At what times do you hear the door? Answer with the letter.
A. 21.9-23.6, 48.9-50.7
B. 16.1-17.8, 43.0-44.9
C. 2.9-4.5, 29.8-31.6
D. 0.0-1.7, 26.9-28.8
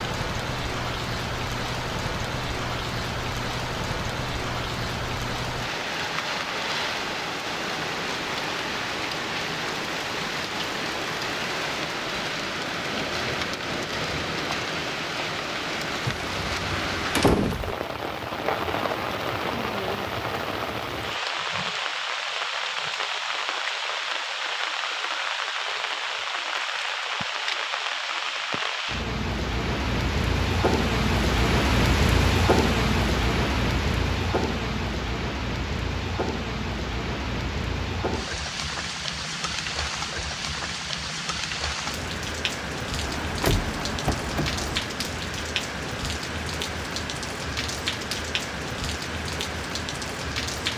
B.